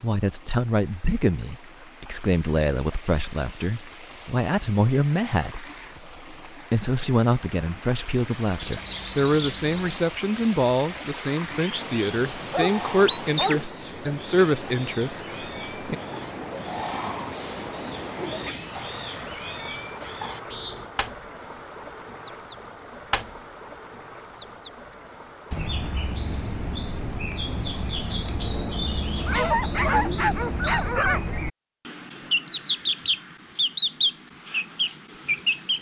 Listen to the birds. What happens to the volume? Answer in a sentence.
The volume of the birds goes up.